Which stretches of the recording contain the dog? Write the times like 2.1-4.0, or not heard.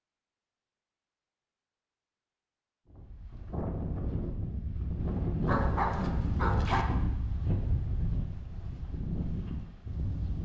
5.5-6.8.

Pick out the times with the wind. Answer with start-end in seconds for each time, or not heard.
2.9-10.4.